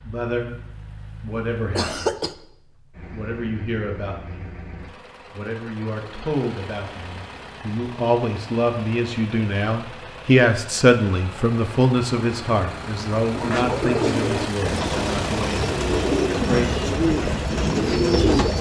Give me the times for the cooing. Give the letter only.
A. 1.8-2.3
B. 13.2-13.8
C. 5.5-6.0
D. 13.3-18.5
D.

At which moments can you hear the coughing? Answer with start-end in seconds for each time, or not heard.
1.8-2.3.